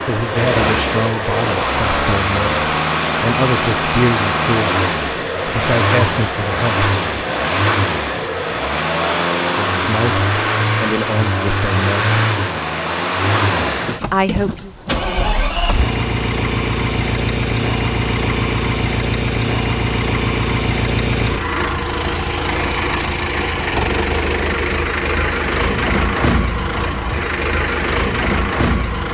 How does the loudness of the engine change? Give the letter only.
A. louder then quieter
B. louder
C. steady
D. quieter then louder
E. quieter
C.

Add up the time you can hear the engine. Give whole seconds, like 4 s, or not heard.
29 s.